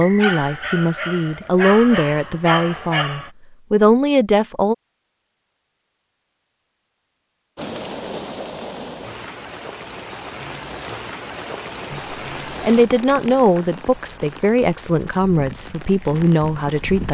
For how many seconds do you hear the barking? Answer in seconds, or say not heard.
3 s.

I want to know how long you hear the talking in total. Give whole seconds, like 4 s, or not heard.
10 s.